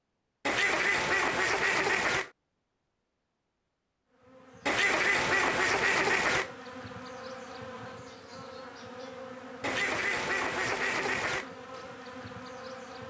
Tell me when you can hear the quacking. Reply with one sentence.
The quacking can be heard from 0.5 to 2.3 s, from 4.7 to 6.5 s and from 9.6 to 11.5 s.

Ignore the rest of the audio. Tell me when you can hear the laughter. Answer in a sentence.
The laughter can't be heard in this clip.